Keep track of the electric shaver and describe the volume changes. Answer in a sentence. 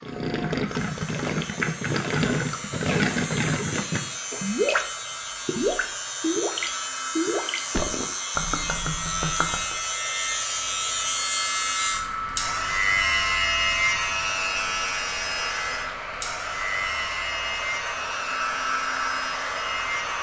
The volume of the electric shaver goes up, then down.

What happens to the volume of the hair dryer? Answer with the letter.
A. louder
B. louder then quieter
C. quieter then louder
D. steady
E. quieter
A.